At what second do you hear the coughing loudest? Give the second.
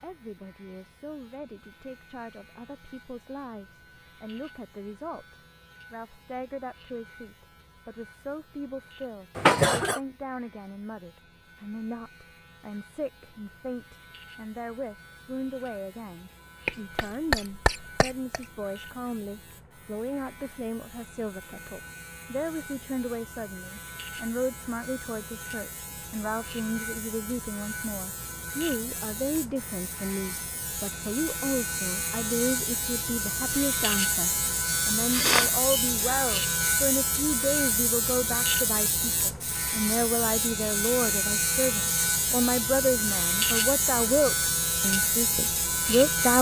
10 s.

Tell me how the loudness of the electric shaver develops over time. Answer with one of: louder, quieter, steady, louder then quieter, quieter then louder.
louder.